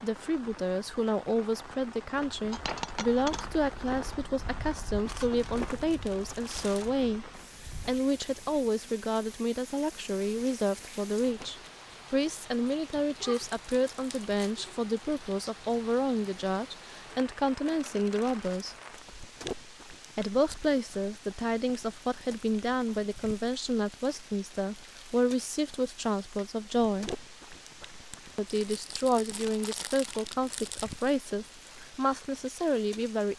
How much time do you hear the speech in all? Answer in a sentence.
You can hear the speech for 31 seconds altogether.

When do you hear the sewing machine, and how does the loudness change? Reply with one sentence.
The sewing machine can't be heard in this clip.